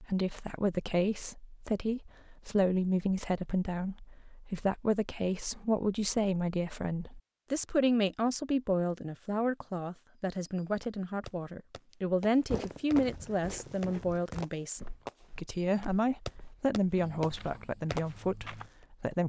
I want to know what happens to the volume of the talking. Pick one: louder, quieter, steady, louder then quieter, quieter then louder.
steady.